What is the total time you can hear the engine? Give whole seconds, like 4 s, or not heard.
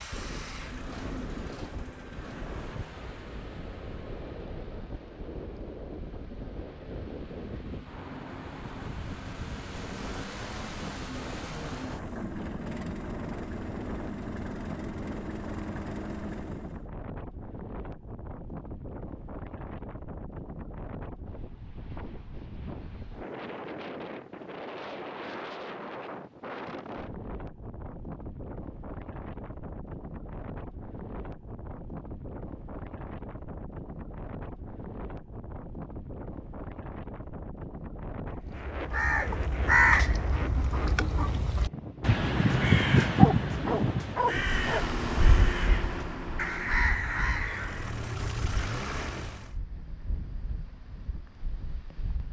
22 s.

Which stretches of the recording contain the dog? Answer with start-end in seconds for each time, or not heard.
43.1-45.0.